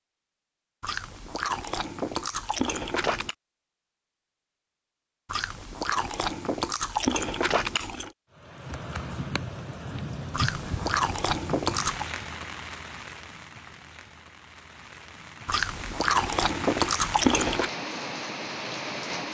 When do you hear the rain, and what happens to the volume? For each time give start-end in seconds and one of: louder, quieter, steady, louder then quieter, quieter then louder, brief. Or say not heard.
8.3-19.3 quieter then louder.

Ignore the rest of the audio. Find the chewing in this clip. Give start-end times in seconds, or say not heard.
0.8-3.4, 5.2-8.1, 10.3-12.1, 15.4-17.7.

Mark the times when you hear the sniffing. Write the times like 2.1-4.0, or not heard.
not heard.